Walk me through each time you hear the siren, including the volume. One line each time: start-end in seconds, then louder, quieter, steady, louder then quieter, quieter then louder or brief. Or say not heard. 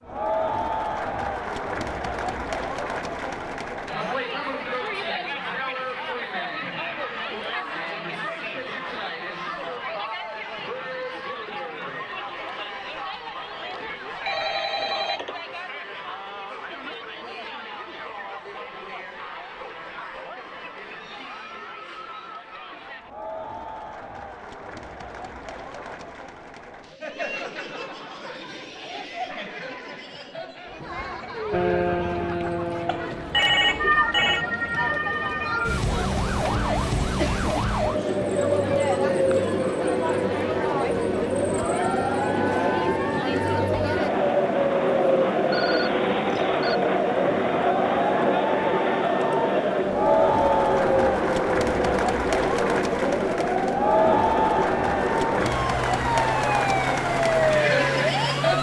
31.5-58.5 steady.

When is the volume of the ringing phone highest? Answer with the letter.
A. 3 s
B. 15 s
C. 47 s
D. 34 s
D.